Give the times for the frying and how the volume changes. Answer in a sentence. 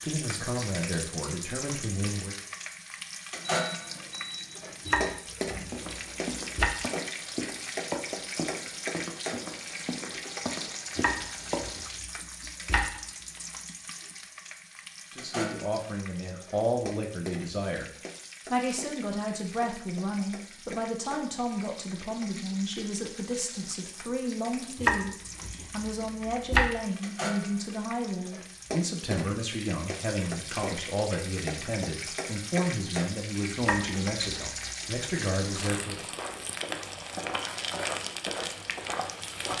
The frying can be heard from 0.0 to 39.5 s, getting quieter then louder.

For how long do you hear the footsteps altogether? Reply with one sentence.
You can hear the footsteps for 10 seconds altogether.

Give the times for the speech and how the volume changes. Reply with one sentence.
The speech can be heard briefly from 0.0 to 2.4 s; and from 15.1 to 36.0 s, at a steady volume.